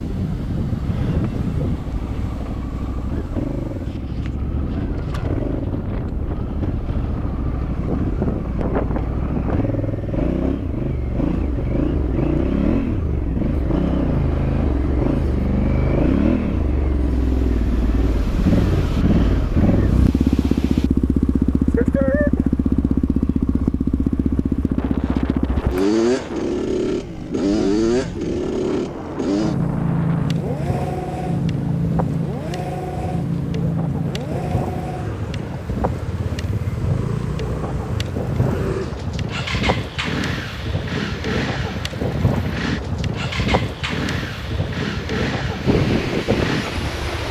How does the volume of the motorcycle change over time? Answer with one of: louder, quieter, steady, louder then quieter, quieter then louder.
louder then quieter.